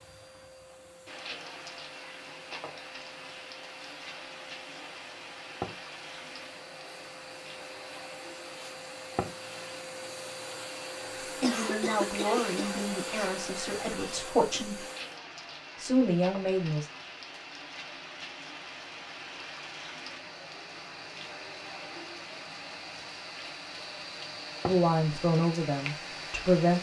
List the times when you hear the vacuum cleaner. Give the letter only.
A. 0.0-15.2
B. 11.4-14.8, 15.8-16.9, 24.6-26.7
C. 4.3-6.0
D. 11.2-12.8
A.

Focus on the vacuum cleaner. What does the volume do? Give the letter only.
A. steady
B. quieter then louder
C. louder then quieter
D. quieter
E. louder
E.